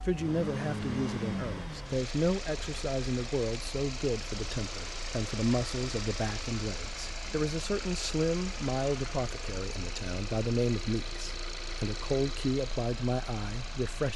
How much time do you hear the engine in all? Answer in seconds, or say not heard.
14 s.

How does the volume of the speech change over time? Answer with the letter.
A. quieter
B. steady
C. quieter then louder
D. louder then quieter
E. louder
B.